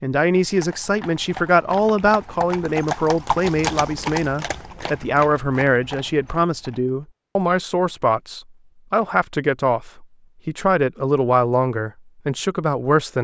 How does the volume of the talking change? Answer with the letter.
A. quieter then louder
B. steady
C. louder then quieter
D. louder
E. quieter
B.